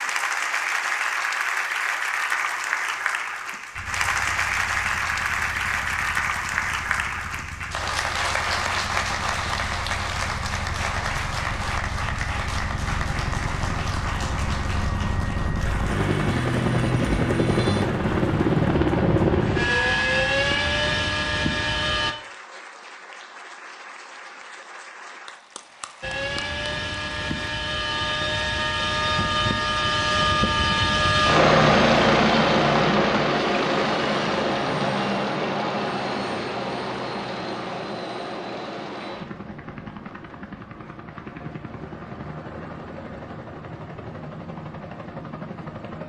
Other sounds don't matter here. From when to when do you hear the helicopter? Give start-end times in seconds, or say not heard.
3.7-22.1, 26.0-46.0.